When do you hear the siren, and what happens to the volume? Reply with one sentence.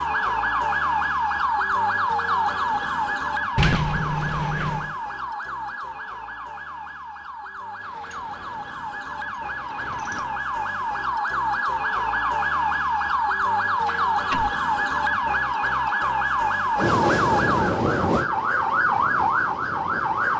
The siren can be heard from 0.0 to 20.3 s, getting quieter then louder.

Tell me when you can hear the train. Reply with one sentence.
The train can be heard from 16.8 to 20.3 s.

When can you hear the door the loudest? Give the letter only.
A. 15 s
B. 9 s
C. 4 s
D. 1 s
C.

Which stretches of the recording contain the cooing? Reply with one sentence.
You can't hear the cooing here.